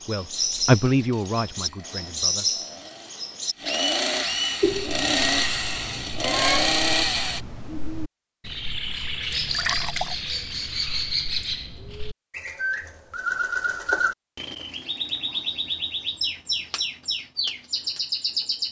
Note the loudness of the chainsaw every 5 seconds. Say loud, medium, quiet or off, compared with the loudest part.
medium, loud, off, off.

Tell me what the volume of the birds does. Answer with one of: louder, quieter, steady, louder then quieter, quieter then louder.
steady.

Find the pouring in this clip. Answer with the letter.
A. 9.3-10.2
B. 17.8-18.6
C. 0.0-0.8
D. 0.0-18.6
A.